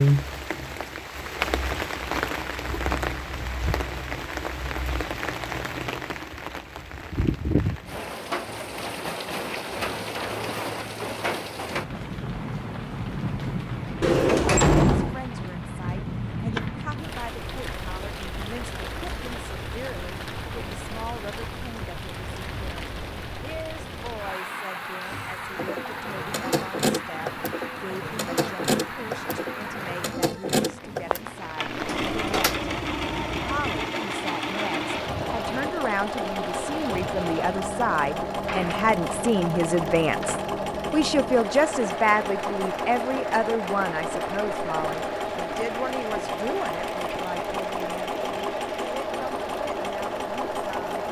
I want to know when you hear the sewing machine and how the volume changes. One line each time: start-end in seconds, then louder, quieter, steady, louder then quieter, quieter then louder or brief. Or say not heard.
25.1-51.0 steady.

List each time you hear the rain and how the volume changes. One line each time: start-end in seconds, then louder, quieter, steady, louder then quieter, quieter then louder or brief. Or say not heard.
0.0-51.0 quieter.